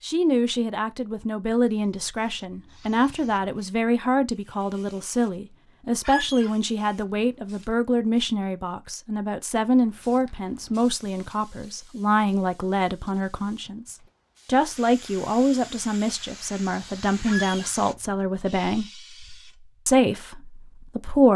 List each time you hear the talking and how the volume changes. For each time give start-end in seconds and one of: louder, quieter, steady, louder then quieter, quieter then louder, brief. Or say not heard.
0.0-18.9 steady
19.9-21.3 brief.